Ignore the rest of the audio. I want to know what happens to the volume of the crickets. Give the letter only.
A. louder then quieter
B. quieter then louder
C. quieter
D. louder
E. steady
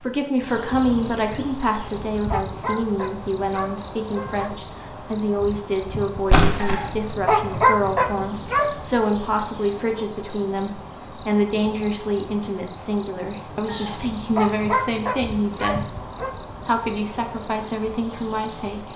E.